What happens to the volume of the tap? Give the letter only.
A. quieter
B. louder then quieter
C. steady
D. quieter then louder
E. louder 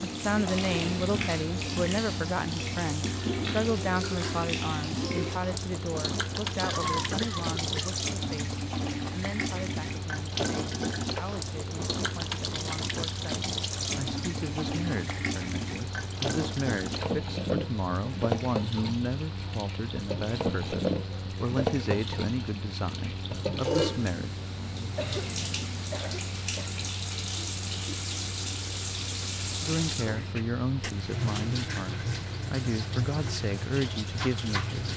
C.